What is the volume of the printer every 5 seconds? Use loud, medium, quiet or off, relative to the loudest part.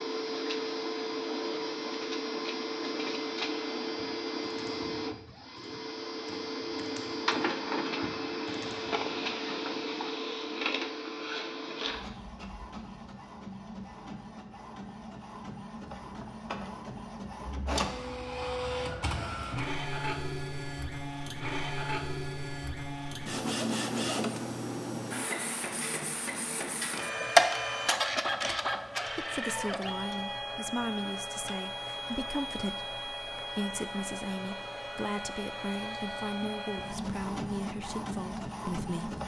medium, medium, medium, medium, medium, loud, medium, medium.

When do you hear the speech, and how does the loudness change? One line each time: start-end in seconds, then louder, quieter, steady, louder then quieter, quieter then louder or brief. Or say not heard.
29.1-39.2 steady.